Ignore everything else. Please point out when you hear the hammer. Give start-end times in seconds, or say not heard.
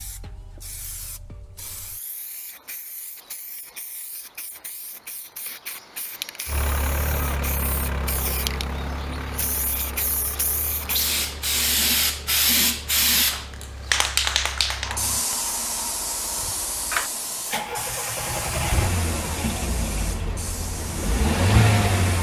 not heard.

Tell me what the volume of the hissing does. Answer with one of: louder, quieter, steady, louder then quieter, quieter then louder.
louder then quieter.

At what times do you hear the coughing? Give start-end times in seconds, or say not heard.
not heard.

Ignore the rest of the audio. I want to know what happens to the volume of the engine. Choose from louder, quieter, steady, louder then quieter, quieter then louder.
quieter then louder.